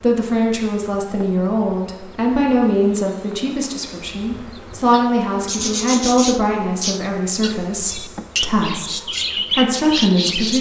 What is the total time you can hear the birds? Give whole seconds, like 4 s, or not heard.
6 s.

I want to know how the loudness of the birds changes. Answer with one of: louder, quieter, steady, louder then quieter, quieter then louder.
quieter then louder.